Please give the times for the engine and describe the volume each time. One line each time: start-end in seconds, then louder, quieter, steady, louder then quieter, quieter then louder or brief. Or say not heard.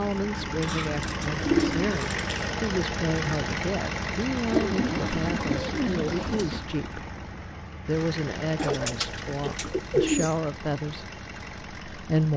0.0-12.3 quieter.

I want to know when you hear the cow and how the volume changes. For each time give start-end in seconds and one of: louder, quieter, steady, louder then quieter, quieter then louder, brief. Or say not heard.
not heard.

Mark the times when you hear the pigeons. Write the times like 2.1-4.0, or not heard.
0.6-2.5, 4.5-6.6, 8.6-10.3.